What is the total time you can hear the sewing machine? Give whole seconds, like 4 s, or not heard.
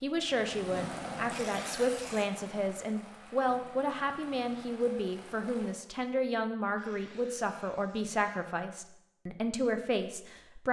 not heard.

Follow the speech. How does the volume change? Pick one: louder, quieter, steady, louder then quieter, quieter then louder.
steady.